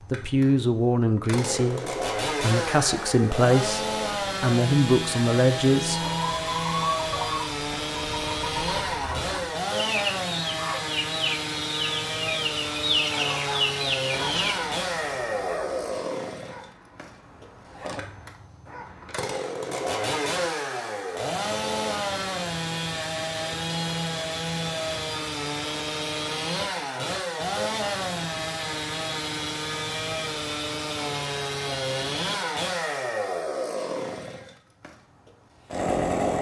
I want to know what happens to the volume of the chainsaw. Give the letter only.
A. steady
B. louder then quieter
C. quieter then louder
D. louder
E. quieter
A.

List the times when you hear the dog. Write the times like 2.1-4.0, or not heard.
13.1-19.2.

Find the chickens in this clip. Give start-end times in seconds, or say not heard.
5.9-14.6.